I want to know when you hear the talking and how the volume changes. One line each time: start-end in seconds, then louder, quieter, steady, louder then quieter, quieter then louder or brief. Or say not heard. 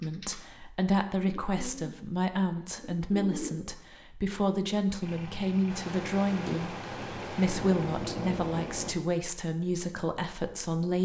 0.0-11.0 steady.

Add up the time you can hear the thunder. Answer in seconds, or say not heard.
3 s.